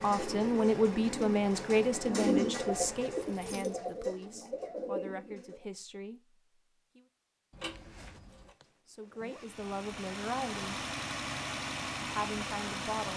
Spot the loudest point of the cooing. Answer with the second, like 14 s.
2 s.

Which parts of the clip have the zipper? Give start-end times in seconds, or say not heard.
7.7-9.4.